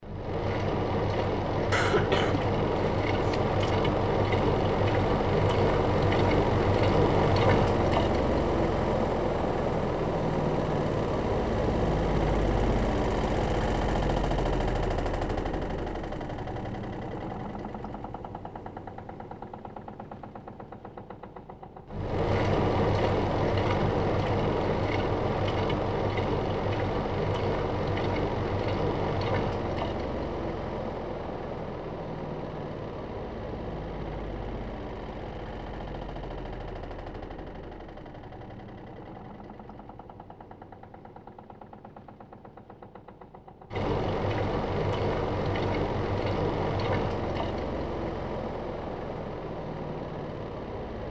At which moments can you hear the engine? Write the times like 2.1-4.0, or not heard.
0.0-51.0.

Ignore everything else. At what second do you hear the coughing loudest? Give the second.
2 s.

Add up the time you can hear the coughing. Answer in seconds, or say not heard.
2 s.